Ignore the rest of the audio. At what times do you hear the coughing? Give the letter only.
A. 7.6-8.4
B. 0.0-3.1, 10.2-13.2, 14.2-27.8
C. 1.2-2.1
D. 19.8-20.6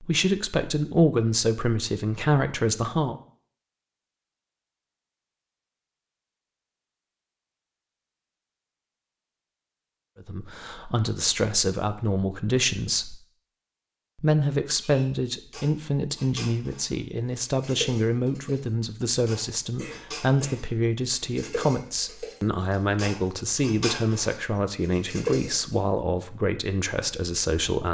D.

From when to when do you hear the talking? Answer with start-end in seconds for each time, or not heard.
0.0-3.1, 10.2-13.2, 14.2-27.8.